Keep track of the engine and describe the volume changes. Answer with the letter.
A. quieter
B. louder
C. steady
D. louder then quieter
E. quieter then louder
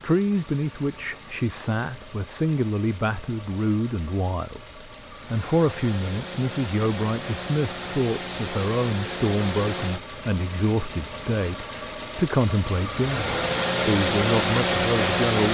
B.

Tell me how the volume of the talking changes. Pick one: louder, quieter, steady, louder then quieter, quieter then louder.
steady.